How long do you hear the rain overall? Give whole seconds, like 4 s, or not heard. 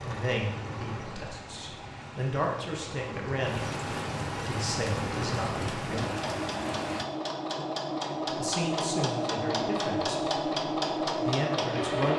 7 s.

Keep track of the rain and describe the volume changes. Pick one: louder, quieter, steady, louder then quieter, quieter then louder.
louder.